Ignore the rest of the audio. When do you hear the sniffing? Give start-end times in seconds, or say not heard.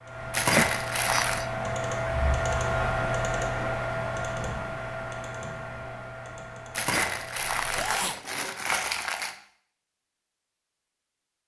0.5-1.4, 7.7-8.2.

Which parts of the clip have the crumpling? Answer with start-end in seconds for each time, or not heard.
0.3-1.4, 6.7-9.3.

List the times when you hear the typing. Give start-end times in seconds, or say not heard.
0.0-8.2.